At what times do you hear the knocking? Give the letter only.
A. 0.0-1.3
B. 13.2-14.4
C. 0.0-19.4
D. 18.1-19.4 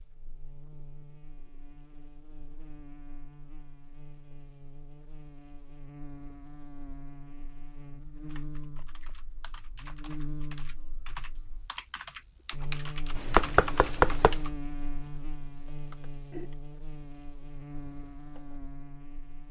B.